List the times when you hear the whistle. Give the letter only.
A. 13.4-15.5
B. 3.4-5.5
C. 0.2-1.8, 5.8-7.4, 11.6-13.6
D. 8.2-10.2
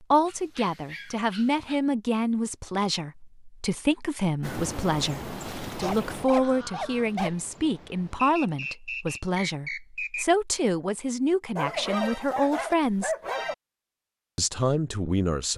D.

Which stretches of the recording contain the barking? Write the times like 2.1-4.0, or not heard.
0.2-1.8, 5.8-7.4, 11.6-13.6.